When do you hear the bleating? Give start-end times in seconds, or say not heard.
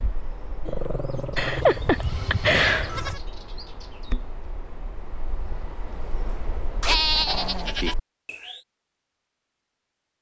1.4-3.2, 6.8-8.0.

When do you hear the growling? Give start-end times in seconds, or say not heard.
0.7-1.9, 6.8-7.8.